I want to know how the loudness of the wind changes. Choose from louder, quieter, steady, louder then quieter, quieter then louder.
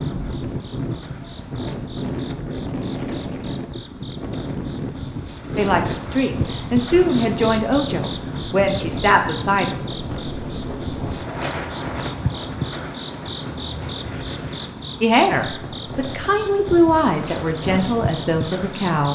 quieter.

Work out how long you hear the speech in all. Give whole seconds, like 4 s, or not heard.
8 s.